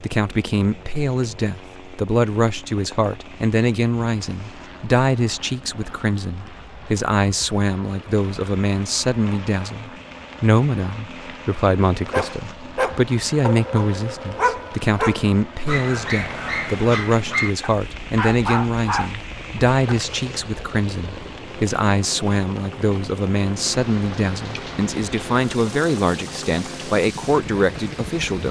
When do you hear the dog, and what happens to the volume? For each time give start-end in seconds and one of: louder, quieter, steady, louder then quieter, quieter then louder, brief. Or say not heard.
12.1-20.0 steady.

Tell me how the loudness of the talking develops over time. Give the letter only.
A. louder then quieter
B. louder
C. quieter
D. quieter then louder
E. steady
E.